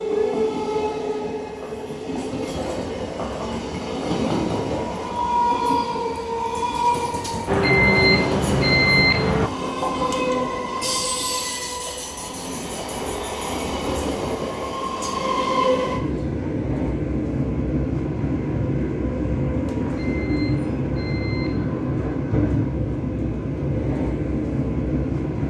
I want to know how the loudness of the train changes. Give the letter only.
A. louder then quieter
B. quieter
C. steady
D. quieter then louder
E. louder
C.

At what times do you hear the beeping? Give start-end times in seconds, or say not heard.
7.5-9.5, 19.8-21.9.